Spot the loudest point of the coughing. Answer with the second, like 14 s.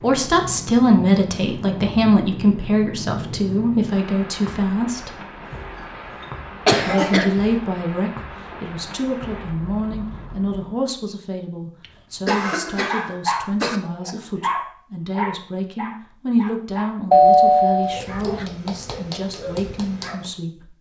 7 s.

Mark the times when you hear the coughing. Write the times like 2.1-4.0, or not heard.
6.7-7.3, 11.8-13.8.